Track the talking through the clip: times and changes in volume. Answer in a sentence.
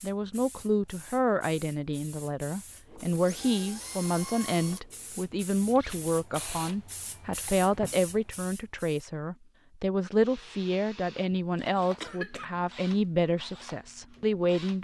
You can hear the talking from 0.0 to 14.8 s, at a steady volume.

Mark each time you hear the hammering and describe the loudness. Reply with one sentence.
You can't hear the hammering here.